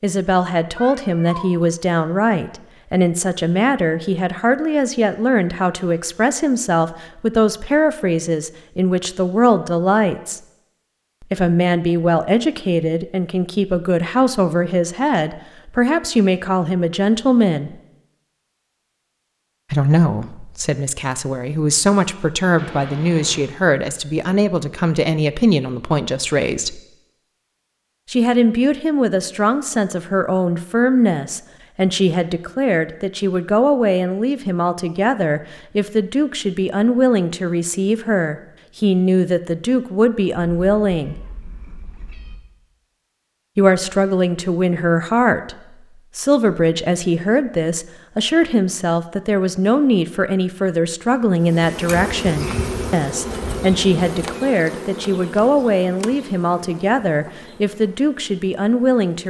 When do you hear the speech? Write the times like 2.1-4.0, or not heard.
0.0-10.4, 11.2-17.8, 19.7-26.8, 28.1-41.1, 43.5-59.2.